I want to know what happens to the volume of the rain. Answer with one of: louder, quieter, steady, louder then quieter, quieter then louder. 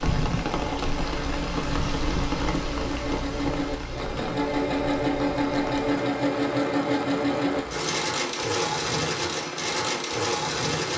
quieter.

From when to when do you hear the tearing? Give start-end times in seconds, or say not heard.
not heard.